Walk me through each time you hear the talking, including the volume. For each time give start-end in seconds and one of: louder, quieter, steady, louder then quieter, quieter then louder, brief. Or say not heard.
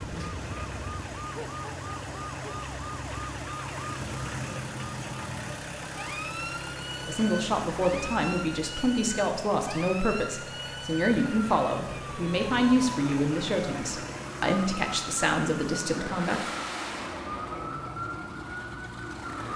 7.0-16.4 steady.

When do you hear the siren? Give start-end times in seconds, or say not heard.
0.0-19.5.